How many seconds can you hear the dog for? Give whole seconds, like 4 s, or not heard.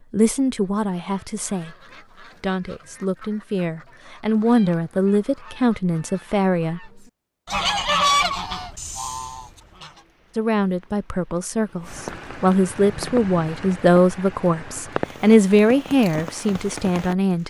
not heard.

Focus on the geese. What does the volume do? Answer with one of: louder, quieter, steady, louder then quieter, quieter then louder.
louder.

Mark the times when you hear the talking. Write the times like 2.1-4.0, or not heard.
0.1-6.9, 10.3-17.4.